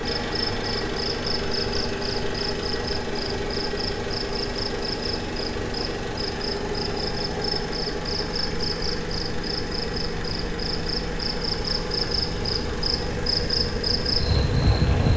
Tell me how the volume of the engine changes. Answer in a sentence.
The volume of the engine stays about the same.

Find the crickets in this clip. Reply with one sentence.
You can hear the crickets from 0.0 to 15.1 s.